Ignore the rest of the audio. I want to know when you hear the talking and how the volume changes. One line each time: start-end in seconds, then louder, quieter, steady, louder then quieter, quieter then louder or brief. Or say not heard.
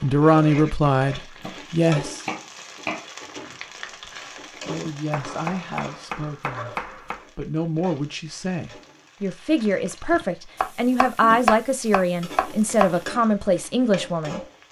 0.0-2.2 brief
3.5-14.4 louder.